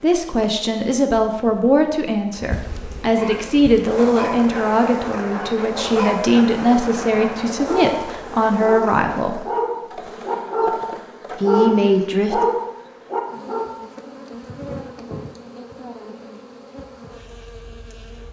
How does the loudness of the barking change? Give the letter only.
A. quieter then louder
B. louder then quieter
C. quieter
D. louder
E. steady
D.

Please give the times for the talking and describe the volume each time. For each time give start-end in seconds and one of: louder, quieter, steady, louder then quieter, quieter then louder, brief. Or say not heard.
0.0-9.4 steady
11.4-12.4 brief.